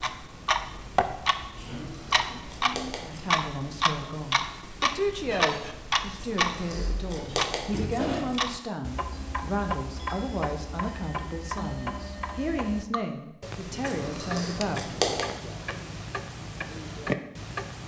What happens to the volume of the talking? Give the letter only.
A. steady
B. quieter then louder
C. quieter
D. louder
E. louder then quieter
A.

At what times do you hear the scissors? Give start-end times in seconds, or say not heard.
1.8-3.4, 6.2-8.6, 13.8-15.2.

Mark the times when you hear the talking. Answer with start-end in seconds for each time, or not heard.
3.0-14.9.